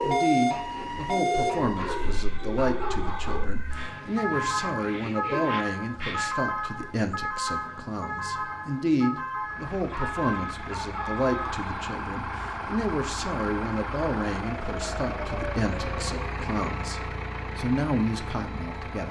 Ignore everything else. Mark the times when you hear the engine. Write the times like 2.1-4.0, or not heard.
9.4-19.0.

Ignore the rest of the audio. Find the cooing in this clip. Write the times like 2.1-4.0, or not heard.
0.0-6.3.